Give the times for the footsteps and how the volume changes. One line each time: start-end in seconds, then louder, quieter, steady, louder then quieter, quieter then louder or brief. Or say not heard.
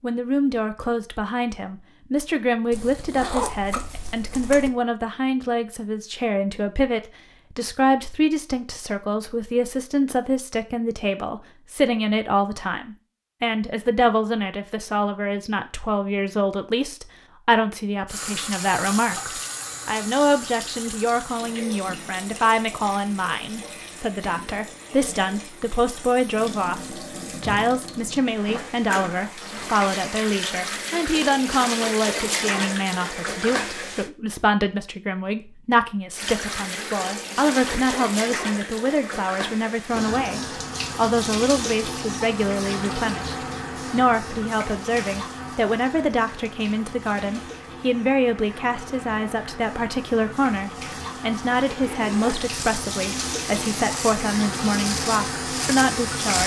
not heard.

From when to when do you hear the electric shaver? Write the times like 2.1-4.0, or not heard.
52.3-56.4.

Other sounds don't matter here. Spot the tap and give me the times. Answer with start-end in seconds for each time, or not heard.
18.1-34.1, 36.1-56.4.